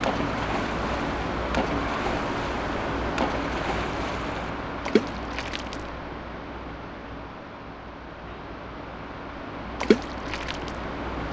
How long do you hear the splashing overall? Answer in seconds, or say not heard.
7 s.